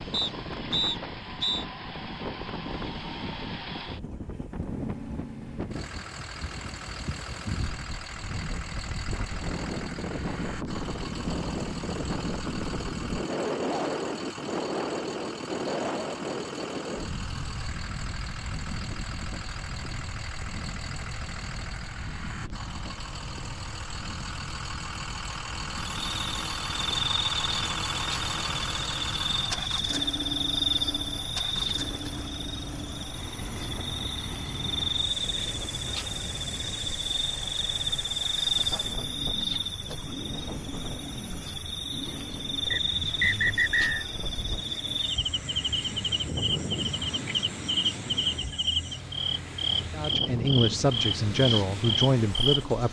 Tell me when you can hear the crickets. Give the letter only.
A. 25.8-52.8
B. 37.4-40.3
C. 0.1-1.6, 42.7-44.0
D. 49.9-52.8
A.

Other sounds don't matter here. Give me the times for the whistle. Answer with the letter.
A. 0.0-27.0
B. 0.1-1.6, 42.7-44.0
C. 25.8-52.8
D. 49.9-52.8
B.